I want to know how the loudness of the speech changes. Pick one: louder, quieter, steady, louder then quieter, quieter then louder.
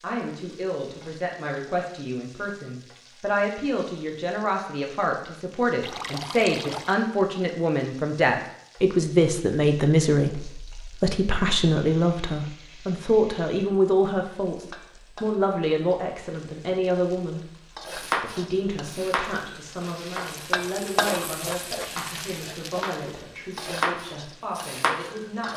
louder then quieter.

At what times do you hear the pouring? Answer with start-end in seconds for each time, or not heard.
5.8-7.0.